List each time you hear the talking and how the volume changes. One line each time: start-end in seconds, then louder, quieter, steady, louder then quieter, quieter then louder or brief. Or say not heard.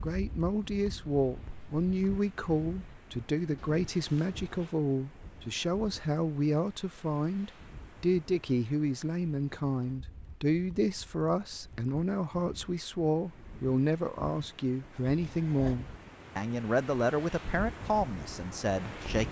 0.0-19.2 steady.